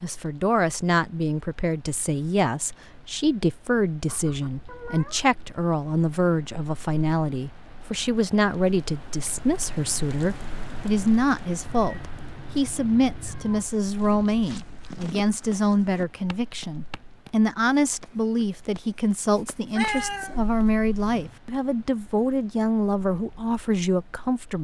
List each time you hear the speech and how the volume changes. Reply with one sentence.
You can hear the speech from 0.0 to 24.5 s, at a steady volume.